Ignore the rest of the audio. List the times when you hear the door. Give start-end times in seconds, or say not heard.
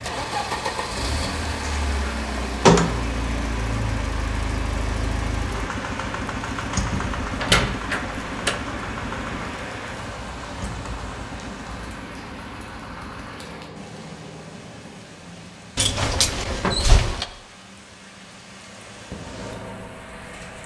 1.6-3.0, 6.9-8.6, 15.8-17.2.